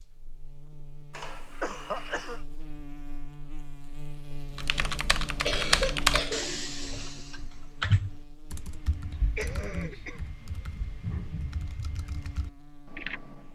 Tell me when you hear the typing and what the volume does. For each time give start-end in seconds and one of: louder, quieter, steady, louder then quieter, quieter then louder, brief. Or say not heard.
4.5-13.5 quieter.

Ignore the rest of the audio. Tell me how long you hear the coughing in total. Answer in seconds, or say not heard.
3 s.